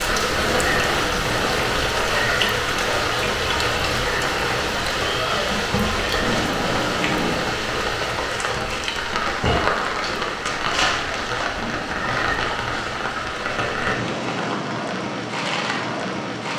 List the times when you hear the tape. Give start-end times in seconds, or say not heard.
0.2-1.7, 6.1-7.7, 11.4-12.3.